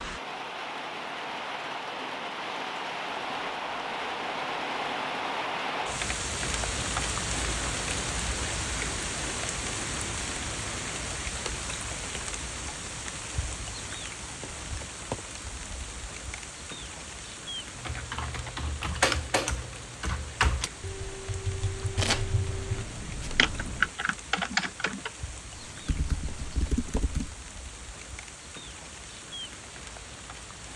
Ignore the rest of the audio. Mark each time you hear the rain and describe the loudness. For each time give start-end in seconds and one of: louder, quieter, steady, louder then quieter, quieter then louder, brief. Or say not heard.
0.0-30.7 quieter.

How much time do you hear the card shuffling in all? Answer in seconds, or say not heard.
2 s.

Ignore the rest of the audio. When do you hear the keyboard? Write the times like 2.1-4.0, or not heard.
17.8-27.3.